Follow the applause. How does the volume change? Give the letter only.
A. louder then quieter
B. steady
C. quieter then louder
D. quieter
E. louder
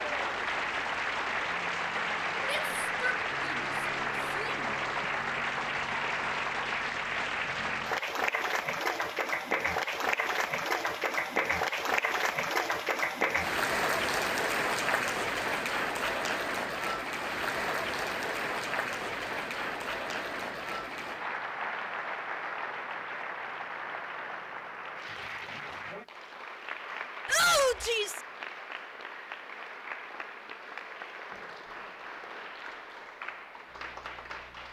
D.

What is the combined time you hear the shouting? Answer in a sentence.
The shouting can be heard for 3 seconds in total.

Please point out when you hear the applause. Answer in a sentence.
The applause can be heard from 0.0 to 34.6 s.